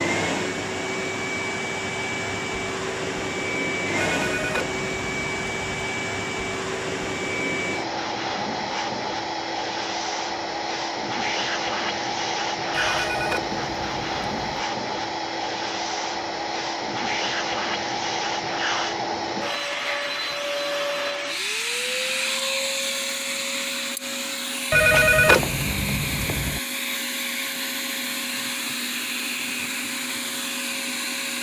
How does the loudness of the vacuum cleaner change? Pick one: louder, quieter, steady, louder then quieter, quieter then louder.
steady.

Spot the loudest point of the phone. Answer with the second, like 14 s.
25 s.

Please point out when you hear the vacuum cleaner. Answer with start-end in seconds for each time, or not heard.
0.0-31.3.